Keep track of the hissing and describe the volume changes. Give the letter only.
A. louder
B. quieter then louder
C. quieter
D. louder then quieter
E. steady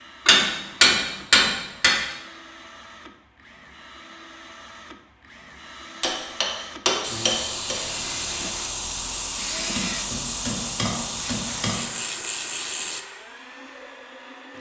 E.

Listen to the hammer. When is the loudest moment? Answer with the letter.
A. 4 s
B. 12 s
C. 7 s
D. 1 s
D.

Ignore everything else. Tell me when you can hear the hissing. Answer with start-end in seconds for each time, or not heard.
7.0-13.1.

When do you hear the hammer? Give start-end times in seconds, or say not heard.
0.2-1.9, 6.0-7.8, 9.8-11.8.